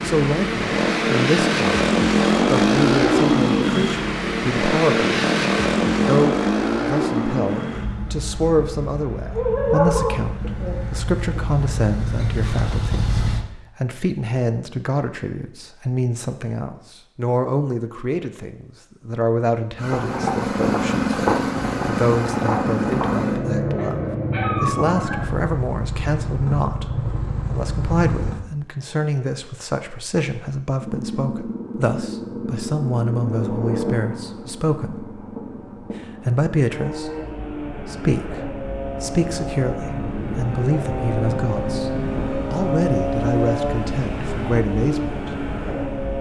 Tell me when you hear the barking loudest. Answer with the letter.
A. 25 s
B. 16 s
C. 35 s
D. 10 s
D.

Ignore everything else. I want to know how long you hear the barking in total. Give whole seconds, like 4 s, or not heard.
3 s.